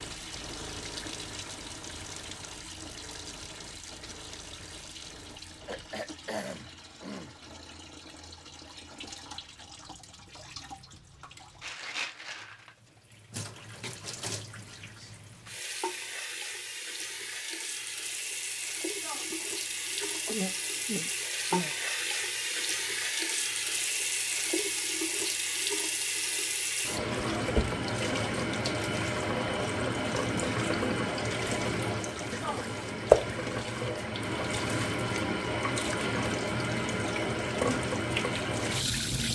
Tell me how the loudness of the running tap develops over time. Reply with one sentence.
The volume of the running tap goes up.